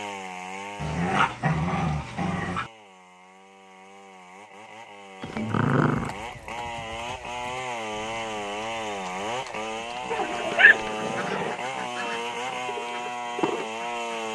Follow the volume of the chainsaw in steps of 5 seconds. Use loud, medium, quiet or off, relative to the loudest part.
medium, loud, loud.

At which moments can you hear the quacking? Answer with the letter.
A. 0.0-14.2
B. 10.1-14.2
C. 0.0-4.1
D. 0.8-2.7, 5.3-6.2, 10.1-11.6
B.